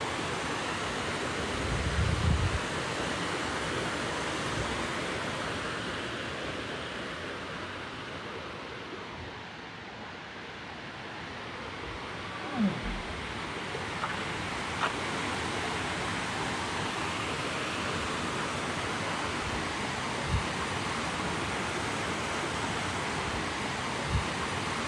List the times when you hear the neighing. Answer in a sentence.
You can hear the neighing from 12.2 to 13.1 s.